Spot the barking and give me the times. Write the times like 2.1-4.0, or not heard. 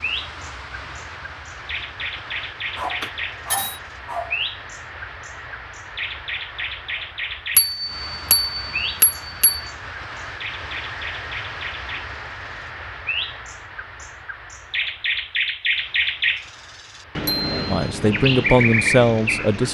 2.8-4.4.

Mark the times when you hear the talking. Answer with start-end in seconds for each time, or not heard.
17.7-19.6.